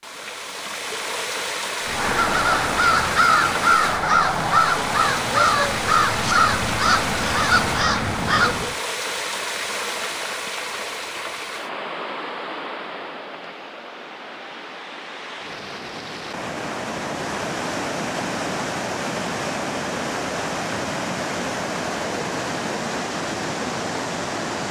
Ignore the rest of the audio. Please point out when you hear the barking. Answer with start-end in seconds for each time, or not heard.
not heard.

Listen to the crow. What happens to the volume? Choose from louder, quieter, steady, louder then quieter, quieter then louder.
steady.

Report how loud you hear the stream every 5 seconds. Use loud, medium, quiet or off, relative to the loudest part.
loud, loud, medium, loud, loud.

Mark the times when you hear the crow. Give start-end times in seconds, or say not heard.
1.8-8.8.